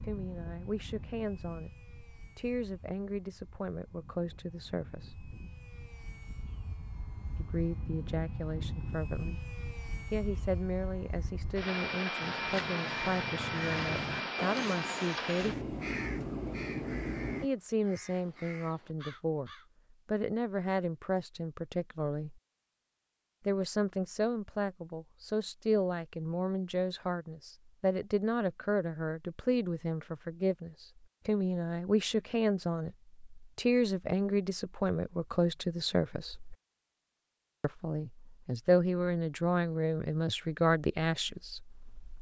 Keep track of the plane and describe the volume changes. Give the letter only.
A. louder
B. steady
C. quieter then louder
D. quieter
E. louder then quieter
A.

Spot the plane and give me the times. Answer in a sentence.
The plane can be heard from 0.0 to 17.5 s.